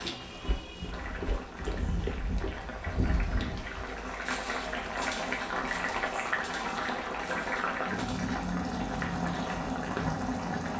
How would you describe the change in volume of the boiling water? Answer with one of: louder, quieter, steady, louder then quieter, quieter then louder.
louder.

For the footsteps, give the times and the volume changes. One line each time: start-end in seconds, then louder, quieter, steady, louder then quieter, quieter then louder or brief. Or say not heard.
0.4-8.2 quieter.